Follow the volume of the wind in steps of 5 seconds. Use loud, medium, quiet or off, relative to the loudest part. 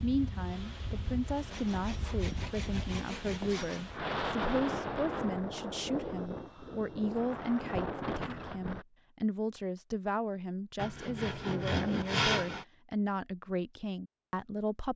loud, loud, off.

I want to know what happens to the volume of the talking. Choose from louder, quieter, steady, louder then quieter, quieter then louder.
steady.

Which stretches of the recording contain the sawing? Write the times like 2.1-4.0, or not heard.
1.5-3.9, 10.8-12.7.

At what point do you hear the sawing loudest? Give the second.
12 s.